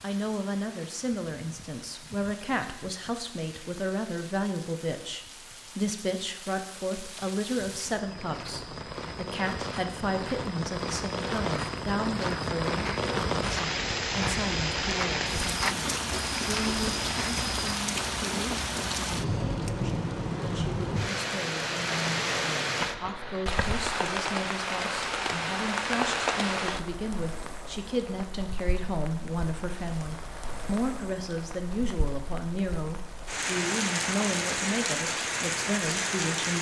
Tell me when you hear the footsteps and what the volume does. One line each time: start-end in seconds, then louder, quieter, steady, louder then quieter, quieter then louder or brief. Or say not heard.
8.0-17.9 louder.